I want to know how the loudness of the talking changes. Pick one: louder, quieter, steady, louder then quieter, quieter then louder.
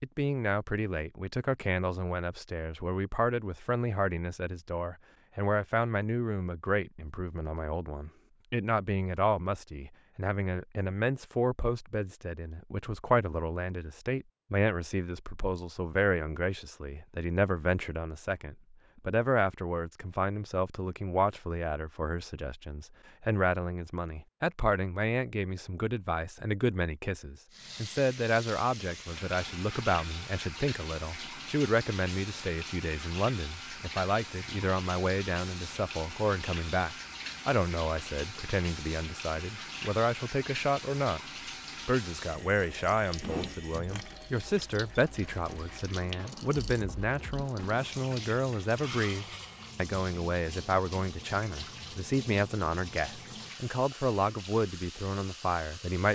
steady.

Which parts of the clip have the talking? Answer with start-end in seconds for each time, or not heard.
0.0-41.2, 41.9-56.0.